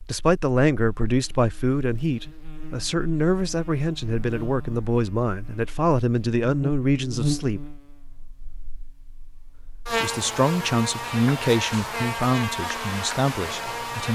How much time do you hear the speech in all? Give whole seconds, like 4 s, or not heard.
12 s.